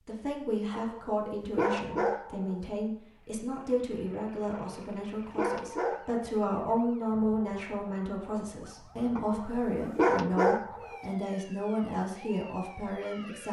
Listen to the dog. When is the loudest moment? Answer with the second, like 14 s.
10 s.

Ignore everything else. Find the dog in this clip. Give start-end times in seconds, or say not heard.
0.8-2.7, 4.5-6.2, 9.2-11.2.